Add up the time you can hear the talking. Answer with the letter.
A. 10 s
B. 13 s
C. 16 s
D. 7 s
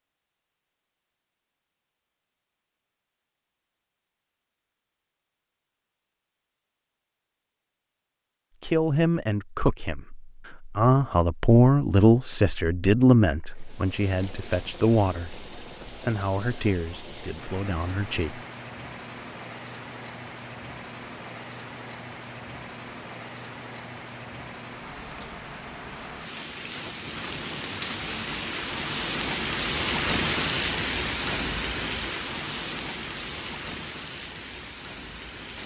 A.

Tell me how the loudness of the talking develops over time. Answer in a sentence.
The loudness of the talking goes up, then down.